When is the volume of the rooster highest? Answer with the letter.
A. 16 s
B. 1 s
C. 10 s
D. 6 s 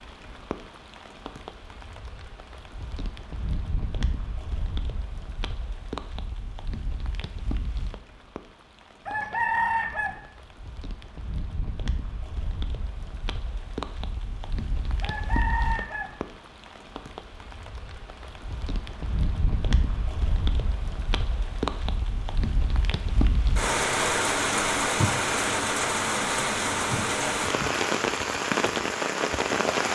C.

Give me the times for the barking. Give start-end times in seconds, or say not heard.
not heard.